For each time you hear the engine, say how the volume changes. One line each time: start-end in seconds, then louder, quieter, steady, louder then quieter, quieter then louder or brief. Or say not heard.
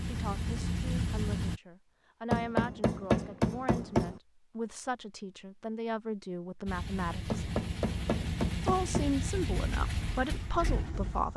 0.0-1.6 brief
6.7-11.3 steady.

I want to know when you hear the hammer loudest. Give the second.
3 s.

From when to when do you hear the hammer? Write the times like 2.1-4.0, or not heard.
2.3-4.2, 7.3-9.2.